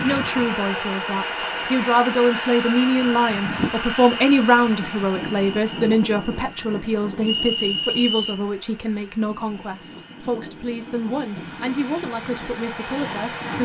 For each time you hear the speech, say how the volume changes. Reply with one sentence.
The speech can be heard from 0.0 to 13.5 s, getting quieter.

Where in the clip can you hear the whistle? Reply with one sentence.
The whistle can be heard from 7.2 to 8.4 s.